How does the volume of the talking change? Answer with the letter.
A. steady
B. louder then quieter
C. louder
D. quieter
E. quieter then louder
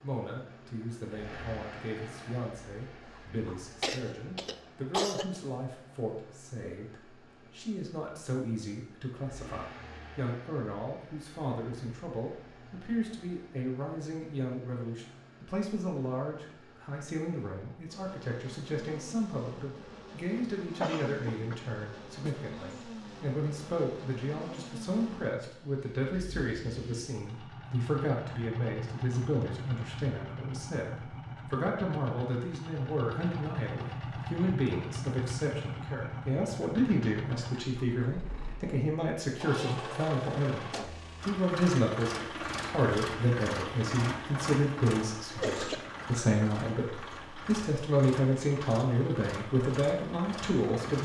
C.